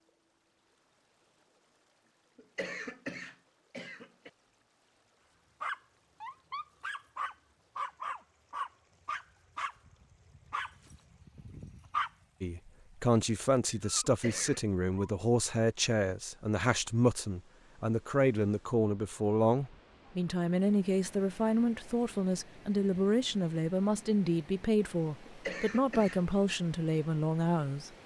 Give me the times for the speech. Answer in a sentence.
You can hear the speech from 12.4 to 27.9 s.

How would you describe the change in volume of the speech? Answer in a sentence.
The volume of the speech stays about the same.